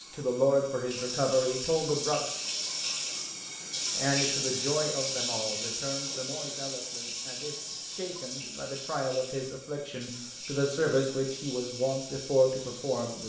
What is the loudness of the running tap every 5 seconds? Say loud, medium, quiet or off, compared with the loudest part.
loud, loud, medium.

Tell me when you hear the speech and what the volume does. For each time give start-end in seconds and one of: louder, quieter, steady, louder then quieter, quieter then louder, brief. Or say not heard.
0.0-2.2 brief
4.0-13.2 quieter then louder.